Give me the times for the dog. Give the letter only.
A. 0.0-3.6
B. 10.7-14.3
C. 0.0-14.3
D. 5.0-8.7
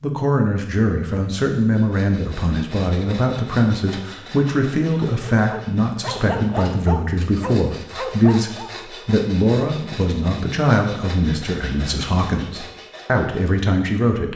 D.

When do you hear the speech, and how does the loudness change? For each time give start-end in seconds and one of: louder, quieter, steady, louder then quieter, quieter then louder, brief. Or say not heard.
0.0-14.3 steady.